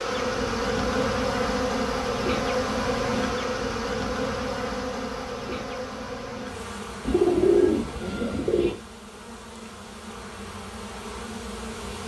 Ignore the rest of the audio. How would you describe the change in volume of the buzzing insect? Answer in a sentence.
The loudness of the buzzing insect goes down.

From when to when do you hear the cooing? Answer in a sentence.
The cooing can be heard from 7.0 to 8.8 s.